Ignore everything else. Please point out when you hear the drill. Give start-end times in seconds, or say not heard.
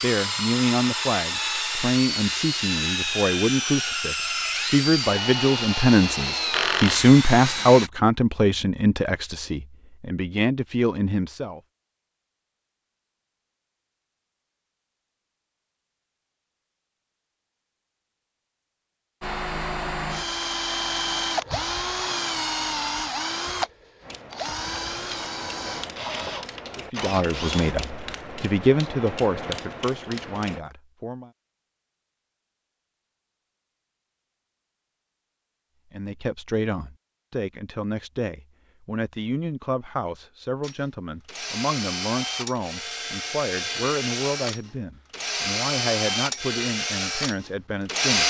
0.0-7.9, 19.2-27.8, 40.6-48.2.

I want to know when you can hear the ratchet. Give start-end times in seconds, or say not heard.
24.0-30.6.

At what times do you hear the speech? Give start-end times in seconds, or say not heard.
0.0-11.6, 26.8-31.3, 35.9-48.2.